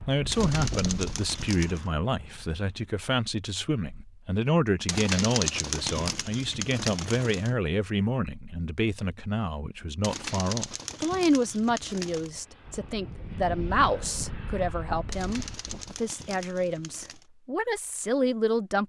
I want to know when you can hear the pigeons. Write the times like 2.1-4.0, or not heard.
0.3-1.9, 4.8-7.5, 10.0-12.3, 15.1-17.2.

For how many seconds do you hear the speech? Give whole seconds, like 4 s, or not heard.
19 s.